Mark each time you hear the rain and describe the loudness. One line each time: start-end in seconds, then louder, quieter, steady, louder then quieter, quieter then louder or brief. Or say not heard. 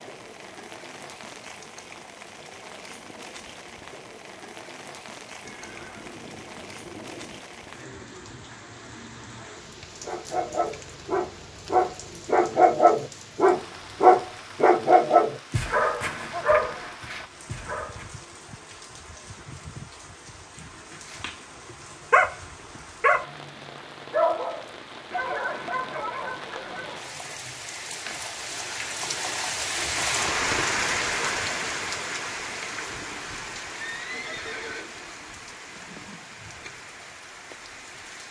0.0-38.2 louder.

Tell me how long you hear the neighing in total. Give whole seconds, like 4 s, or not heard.
3 s.